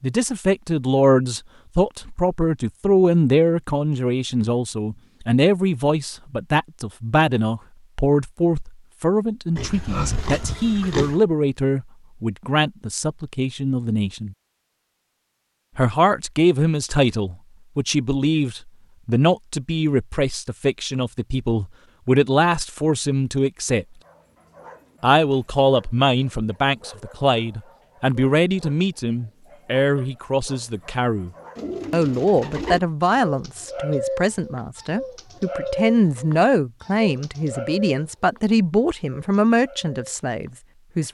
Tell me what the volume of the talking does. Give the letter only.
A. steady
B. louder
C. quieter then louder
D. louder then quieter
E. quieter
A.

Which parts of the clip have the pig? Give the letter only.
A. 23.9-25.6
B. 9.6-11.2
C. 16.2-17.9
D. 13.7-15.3
B.